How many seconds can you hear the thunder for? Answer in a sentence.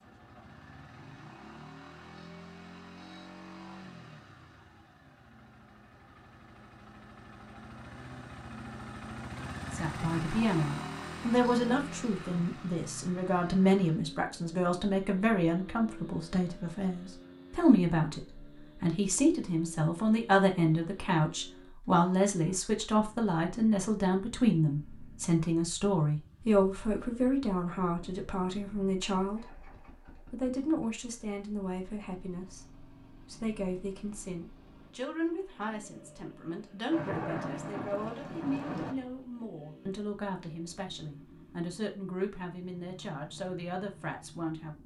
You can hear the thunder for 2 seconds altogether.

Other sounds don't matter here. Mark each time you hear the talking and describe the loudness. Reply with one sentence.
You can hear the talking from 9.7 to 44.8 s, getting quieter.